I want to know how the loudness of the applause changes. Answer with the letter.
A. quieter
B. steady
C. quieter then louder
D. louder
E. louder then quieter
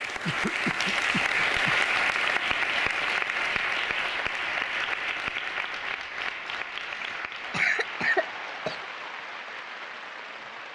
A.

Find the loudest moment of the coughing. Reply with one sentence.
The volume of the coughing peaks at 8 seconds.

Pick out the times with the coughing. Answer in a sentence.
The coughing can be heard from 0.2 to 1.9 s and from 6.9 to 8.8 s.